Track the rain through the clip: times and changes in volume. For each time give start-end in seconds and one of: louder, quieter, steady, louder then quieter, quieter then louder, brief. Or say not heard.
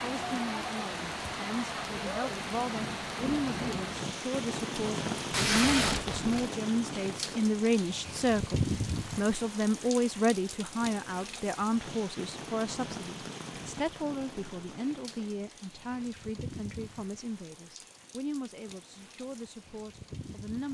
0.0-20.6 quieter.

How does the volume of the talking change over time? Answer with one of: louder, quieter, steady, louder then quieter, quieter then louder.
louder then quieter.